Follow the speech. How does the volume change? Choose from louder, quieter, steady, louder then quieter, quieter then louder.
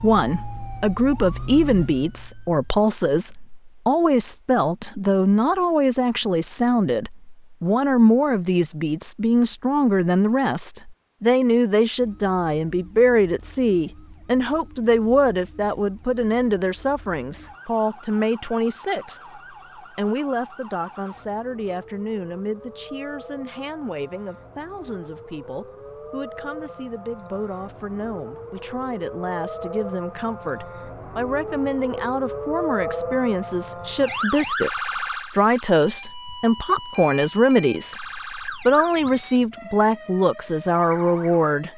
quieter then louder.